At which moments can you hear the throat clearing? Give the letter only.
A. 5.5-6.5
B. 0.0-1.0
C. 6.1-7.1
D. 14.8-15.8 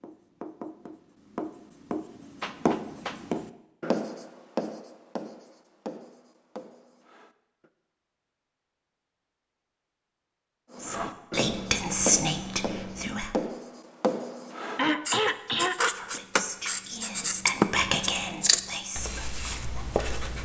D.